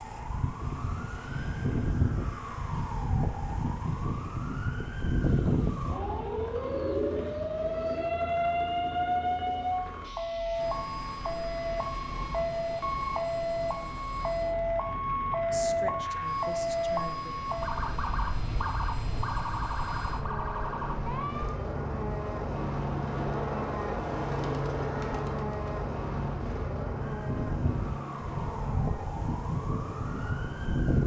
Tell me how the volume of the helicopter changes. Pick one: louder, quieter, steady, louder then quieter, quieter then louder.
louder.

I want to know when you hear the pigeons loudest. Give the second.
7 s.